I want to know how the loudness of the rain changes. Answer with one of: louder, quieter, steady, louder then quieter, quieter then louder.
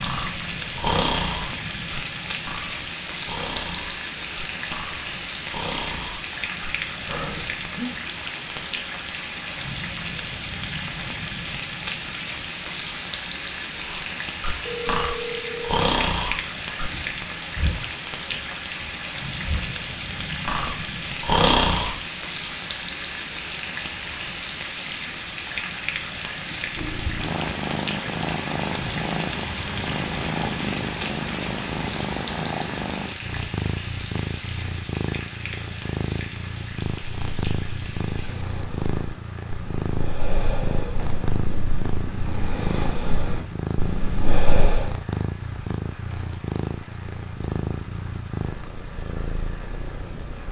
quieter.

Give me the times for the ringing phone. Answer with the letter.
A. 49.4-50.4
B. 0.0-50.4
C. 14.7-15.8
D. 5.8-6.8
C.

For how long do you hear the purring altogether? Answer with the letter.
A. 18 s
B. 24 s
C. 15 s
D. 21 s
B.